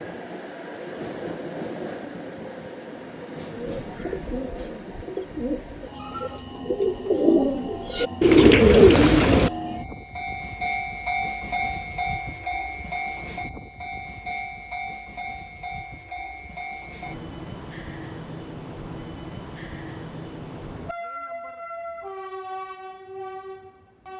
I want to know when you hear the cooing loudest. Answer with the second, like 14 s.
9 s.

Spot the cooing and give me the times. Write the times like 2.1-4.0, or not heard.
3.5-9.5.